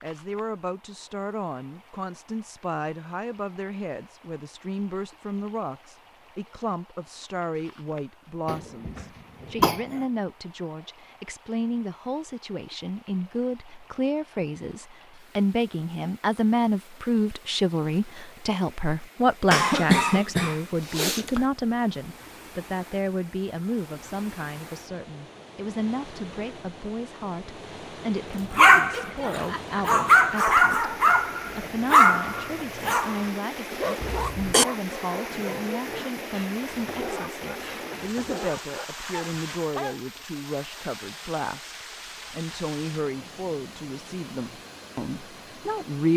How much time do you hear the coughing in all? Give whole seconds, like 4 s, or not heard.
4 s.